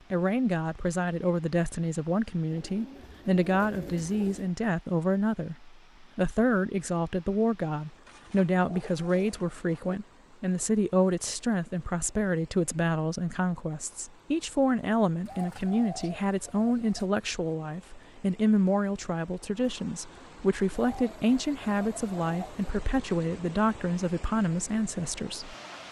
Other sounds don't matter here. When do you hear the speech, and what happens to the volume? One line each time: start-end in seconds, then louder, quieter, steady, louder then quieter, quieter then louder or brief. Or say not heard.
0.1-25.6 steady.